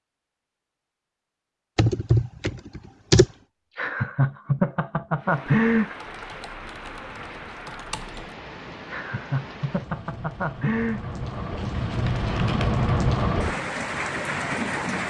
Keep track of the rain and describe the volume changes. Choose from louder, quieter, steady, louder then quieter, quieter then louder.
louder.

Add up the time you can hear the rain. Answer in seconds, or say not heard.
10 s.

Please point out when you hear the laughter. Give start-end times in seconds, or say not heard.
3.8-6.0, 8.8-11.1.